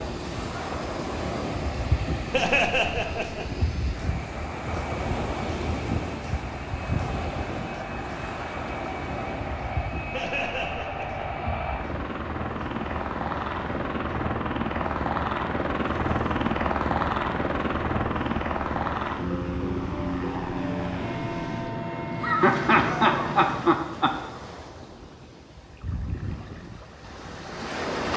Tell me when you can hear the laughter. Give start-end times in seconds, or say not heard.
2.3-3.6, 10.1-11.2, 22.2-24.1.